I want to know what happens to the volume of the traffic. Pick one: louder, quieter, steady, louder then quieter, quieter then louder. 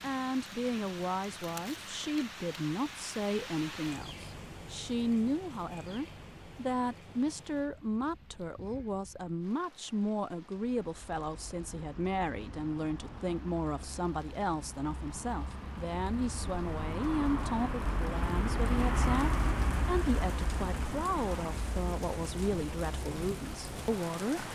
louder then quieter.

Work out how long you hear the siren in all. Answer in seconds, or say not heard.
not heard.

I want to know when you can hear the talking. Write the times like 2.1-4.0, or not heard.
0.0-24.5.